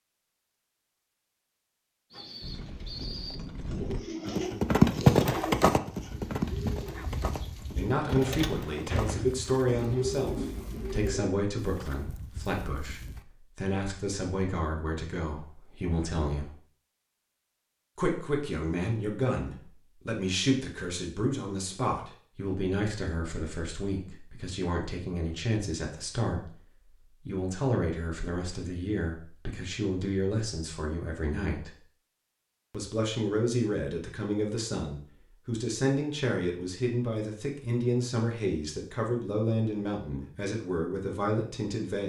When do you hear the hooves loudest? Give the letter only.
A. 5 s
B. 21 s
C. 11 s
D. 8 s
A.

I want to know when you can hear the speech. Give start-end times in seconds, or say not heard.
7.5-16.6, 17.9-31.8, 32.7-42.0.